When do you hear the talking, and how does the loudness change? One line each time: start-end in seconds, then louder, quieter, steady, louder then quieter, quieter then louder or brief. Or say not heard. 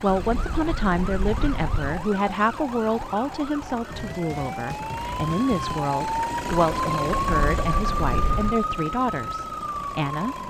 0.0-10.3 steady.